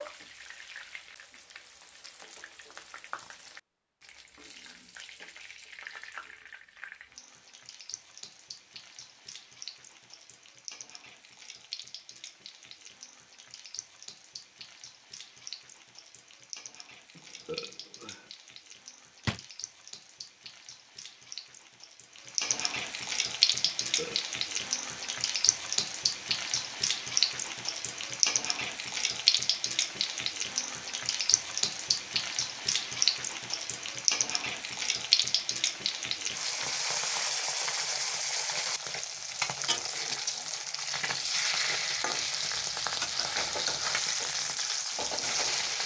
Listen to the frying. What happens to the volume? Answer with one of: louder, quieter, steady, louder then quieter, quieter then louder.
louder.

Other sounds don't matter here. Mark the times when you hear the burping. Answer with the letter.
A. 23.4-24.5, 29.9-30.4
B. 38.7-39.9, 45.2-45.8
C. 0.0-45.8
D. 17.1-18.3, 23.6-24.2
D.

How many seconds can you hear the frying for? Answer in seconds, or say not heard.
46 s.